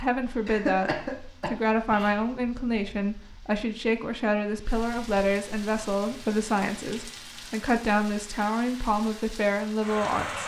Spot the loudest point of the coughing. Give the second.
1 s.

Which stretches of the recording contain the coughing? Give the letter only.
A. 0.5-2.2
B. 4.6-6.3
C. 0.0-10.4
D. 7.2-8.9
A.